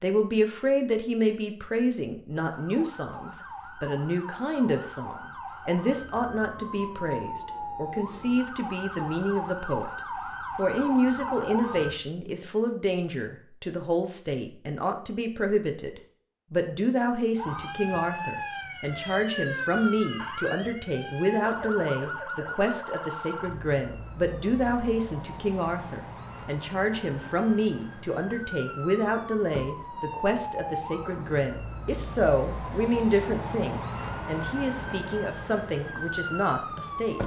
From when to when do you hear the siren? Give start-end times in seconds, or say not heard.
2.3-12.0, 17.4-37.2.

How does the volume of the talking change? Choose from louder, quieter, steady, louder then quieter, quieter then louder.
steady.